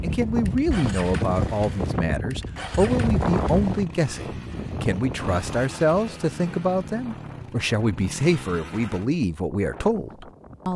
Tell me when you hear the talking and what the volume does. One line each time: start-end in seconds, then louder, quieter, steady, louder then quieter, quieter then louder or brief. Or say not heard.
0.0-10.7 steady.